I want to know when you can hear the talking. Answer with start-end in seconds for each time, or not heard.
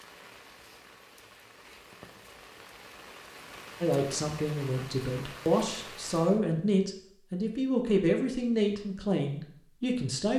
3.8-10.3.